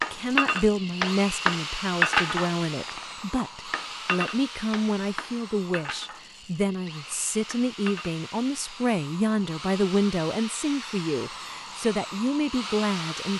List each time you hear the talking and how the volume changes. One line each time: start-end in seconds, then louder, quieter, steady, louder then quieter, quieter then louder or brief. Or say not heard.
0.1-13.3 steady.